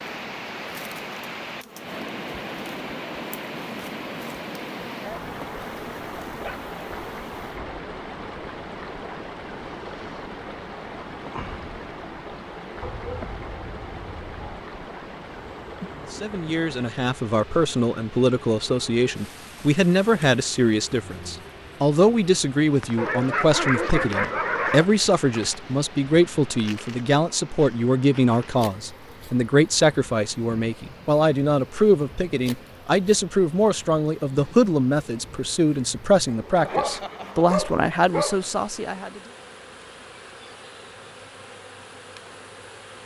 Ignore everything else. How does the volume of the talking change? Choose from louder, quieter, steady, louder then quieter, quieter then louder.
steady.